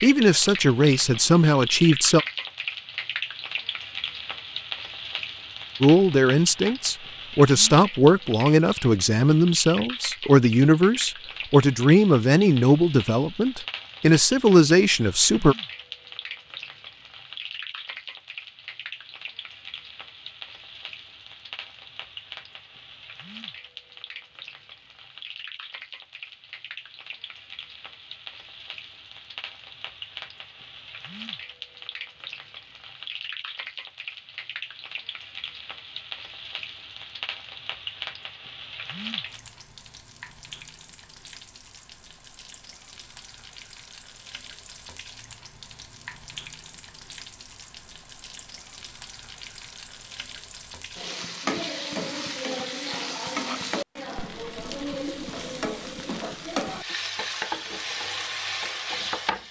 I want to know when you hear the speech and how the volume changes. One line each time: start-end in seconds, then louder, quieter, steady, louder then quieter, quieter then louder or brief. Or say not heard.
0.0-2.2 brief
5.8-15.6 steady.